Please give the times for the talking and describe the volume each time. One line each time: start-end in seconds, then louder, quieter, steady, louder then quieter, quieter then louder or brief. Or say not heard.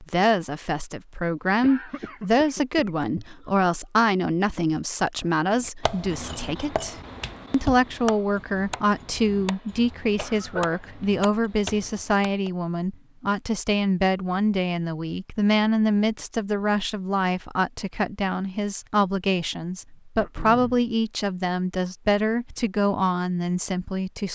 0.0-24.2 steady.